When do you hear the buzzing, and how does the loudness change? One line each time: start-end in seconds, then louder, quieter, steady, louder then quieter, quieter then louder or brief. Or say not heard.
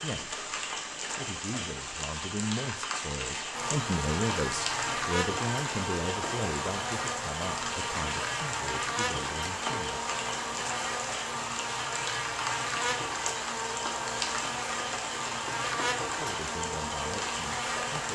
3.5-18.0 steady.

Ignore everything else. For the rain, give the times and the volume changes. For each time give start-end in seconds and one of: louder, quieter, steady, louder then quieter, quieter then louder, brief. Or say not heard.
0.0-18.0 steady.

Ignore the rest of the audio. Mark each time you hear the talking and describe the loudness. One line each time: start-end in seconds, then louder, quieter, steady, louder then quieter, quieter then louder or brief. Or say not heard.
0.0-10.0 louder then quieter
16.1-18.0 brief.